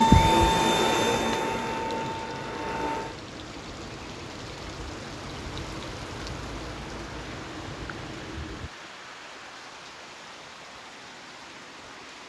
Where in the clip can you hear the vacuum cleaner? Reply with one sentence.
The vacuum cleaner can be heard from 0.0 to 3.1 s.